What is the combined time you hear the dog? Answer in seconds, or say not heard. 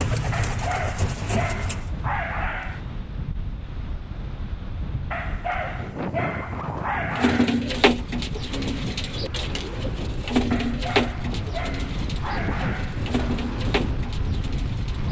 8 s.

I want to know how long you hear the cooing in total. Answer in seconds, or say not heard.
10 s.